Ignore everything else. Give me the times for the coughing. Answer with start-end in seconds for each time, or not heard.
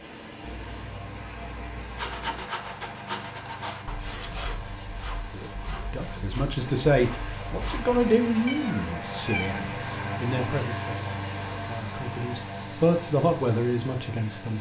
not heard.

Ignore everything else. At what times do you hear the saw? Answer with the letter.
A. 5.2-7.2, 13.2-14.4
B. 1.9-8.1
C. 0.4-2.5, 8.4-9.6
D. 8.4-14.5
B.